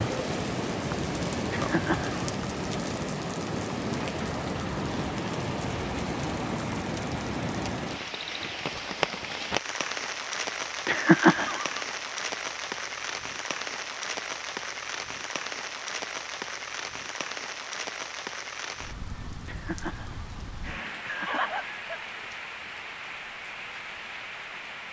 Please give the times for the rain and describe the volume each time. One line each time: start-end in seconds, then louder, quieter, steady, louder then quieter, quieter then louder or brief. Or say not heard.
0.0-24.8 quieter.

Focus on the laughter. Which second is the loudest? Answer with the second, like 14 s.
11 s.